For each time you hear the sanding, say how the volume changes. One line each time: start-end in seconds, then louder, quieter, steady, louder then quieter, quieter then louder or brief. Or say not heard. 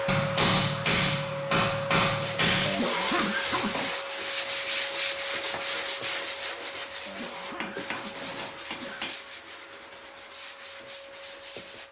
2.0-11.8 quieter.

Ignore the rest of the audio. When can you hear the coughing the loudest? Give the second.
3 s.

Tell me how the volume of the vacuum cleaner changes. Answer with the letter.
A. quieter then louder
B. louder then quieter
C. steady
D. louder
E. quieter
E.